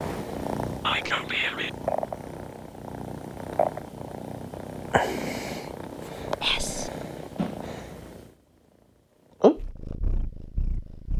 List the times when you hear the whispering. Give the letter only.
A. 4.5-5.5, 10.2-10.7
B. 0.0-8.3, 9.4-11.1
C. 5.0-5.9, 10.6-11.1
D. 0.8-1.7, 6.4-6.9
D.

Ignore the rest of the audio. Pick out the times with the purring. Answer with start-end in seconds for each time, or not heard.
0.0-8.3, 9.4-11.1.